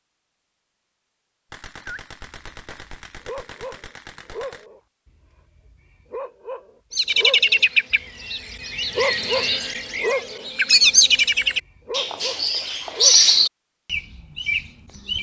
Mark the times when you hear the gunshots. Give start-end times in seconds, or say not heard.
1.5-4.7.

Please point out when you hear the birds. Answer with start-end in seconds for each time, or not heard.
6.9-15.1.